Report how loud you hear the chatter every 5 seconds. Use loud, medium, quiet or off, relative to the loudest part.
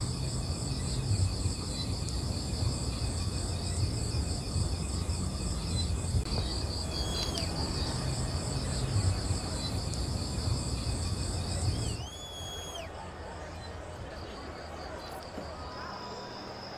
off, loud, loud, loud.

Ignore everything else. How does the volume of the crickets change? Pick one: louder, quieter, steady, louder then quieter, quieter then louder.
quieter.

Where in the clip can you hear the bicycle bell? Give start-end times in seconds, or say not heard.
not heard.